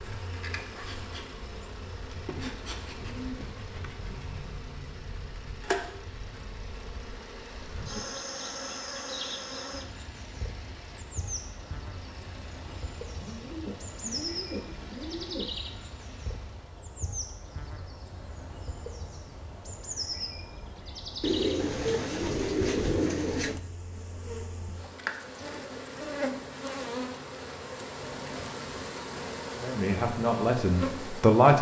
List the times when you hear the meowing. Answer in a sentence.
You can't hear the meowing here.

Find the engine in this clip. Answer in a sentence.
You can hear the engine from 0.0 to 16.9 s.